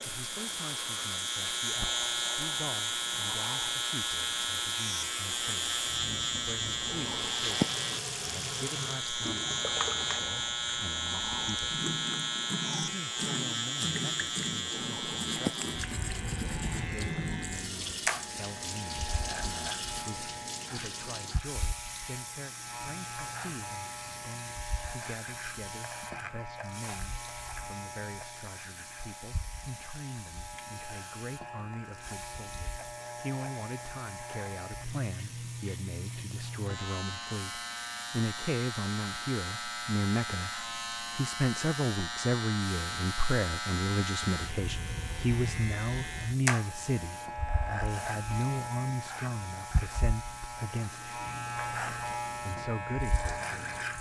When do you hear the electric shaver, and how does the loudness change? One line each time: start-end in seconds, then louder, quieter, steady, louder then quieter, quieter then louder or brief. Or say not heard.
0.0-53.9 quieter then louder.